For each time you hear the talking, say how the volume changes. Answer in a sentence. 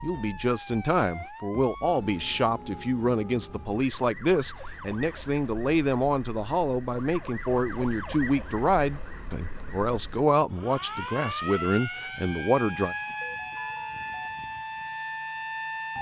You can hear the talking from 0.0 to 12.9 s, at a steady volume.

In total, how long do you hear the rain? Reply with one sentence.
You can't hear the rain here.